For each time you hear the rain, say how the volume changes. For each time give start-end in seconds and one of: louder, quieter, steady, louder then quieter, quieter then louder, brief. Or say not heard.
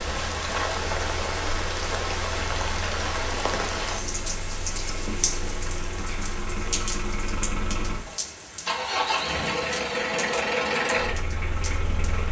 0.0-12.2 quieter.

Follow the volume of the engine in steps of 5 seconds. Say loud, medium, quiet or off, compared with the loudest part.
quiet, loud, loud.